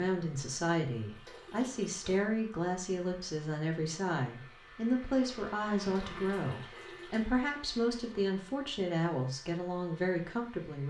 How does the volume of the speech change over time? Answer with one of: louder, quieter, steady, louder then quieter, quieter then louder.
steady.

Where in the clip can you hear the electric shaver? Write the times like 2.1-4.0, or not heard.
not heard.